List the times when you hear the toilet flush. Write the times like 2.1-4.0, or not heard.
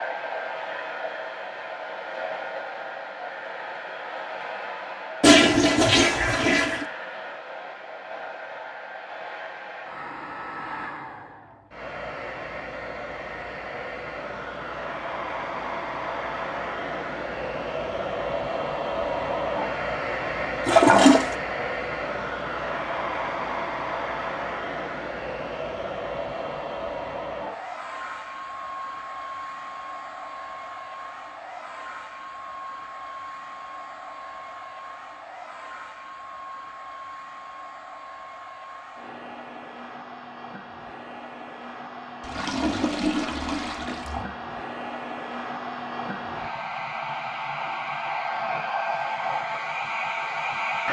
5.2-6.8, 20.6-21.4, 42.2-44.2.